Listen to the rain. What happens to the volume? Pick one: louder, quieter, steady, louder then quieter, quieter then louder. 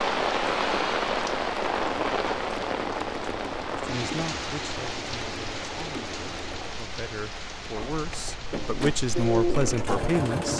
quieter.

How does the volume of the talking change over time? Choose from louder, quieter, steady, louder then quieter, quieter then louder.
quieter then louder.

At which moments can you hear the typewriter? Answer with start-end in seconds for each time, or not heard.
not heard.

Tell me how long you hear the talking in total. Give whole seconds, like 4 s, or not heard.
7 s.